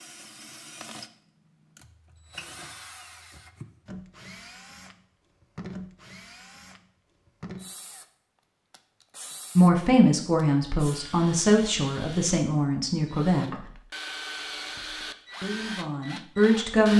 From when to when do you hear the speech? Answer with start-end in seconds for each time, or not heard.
9.6-13.5, 15.4-16.9.